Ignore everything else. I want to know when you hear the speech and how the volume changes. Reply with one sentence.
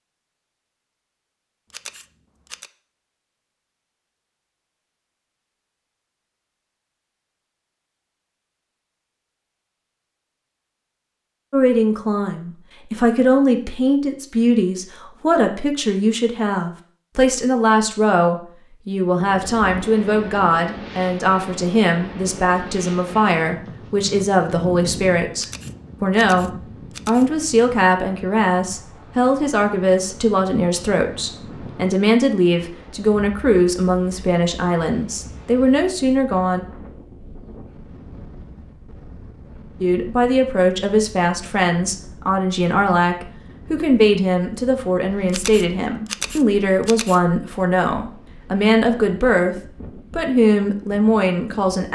The speech can be heard from 11.5 to 36.6 s, at a steady volume; and from 39.8 to 51.9 s, at a steady volume.